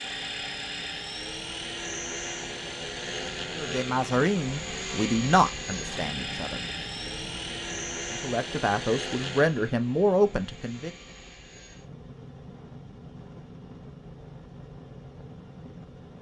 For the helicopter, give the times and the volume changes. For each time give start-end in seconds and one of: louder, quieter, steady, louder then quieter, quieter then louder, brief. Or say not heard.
0.0-16.1 quieter.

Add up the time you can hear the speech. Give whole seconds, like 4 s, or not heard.
6 s.